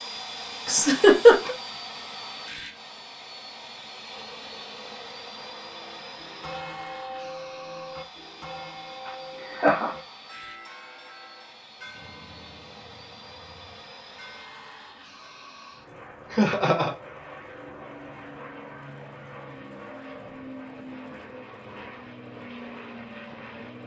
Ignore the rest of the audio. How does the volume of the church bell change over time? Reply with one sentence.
The volume of the church bell goes down.